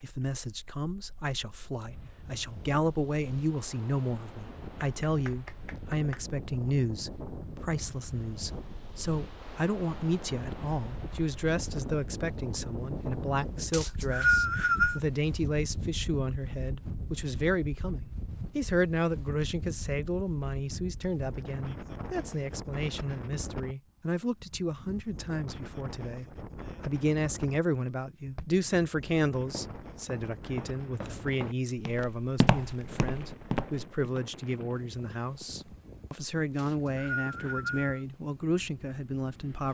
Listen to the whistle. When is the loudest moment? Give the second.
14 s.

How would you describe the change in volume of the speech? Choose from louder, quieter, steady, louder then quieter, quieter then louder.
steady.